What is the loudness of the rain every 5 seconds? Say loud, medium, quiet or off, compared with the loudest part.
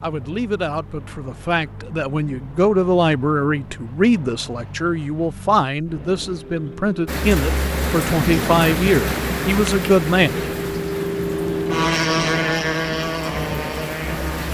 off, loud, medium.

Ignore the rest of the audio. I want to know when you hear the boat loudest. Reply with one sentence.
The loudest moment of the boat is at 12 seconds.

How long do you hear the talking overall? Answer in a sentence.
You can hear the talking for 10 seconds altogether.